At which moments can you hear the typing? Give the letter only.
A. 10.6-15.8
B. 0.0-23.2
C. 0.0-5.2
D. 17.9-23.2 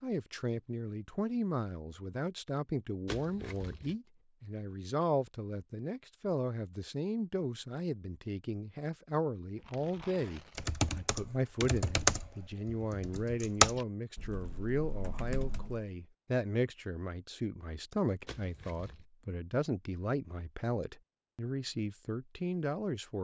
A.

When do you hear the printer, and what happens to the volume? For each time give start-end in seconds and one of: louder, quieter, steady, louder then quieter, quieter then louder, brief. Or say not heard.
not heard.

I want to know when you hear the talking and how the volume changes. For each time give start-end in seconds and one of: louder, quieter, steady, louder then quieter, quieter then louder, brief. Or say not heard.
0.0-23.2 steady.